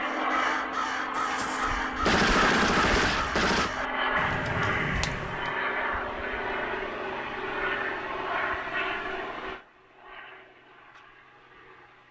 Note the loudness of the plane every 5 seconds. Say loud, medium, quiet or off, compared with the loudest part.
loud, loud, quiet.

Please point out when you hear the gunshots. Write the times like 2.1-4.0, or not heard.
1.1-3.7.